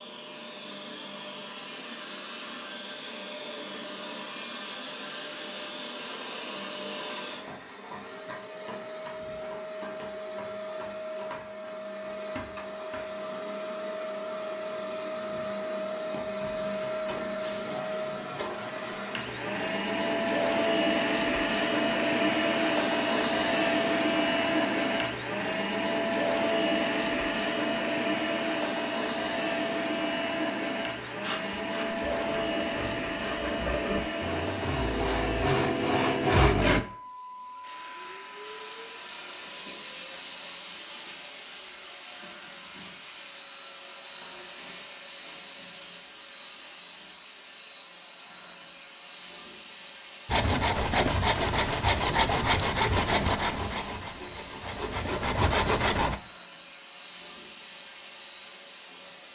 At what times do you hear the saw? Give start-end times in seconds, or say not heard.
31.1-36.9, 50.2-56.2.